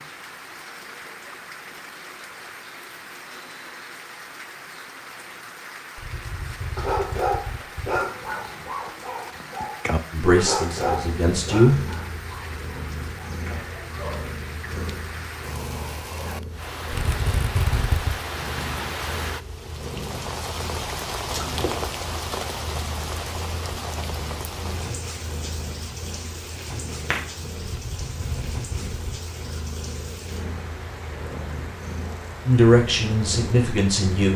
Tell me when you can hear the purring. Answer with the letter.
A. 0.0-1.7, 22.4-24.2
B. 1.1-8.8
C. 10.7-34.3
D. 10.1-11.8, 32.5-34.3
C.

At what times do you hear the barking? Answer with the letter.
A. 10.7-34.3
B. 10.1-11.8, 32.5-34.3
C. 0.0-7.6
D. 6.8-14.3
D.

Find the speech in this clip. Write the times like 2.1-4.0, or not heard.
10.1-11.8, 32.5-34.3.